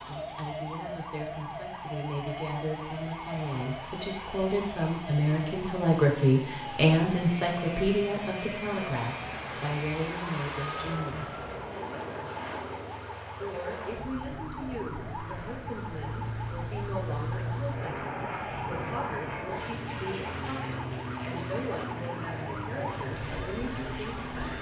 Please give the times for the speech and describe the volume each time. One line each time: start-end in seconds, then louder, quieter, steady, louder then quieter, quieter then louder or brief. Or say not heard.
0.0-11.3 louder then quieter
12.8-24.5 steady.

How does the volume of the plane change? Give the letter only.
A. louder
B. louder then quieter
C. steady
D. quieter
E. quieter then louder
A.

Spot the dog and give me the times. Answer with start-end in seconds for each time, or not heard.
not heard.